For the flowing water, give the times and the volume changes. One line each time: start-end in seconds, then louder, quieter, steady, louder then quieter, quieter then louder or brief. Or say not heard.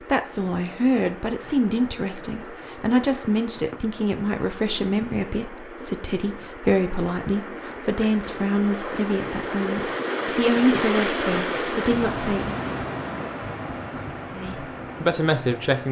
0.0-15.8 louder then quieter.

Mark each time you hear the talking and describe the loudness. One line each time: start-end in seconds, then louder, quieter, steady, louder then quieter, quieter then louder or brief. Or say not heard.
0.1-12.6 steady
14.3-15.8 brief.